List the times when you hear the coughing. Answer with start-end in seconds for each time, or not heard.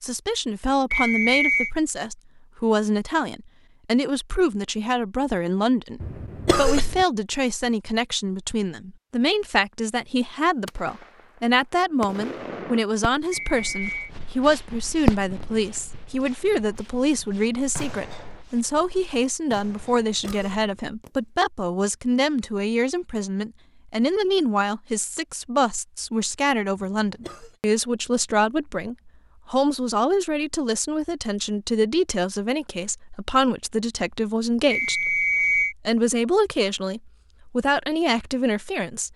6.0-7.0, 19.9-20.8, 26.8-27.6.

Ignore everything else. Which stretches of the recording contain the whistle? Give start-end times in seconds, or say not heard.
0.9-1.7, 13.3-14.1, 34.7-35.8.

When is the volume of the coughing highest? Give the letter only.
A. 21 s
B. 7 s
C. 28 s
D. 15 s
B.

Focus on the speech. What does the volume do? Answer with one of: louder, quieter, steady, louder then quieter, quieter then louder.
steady.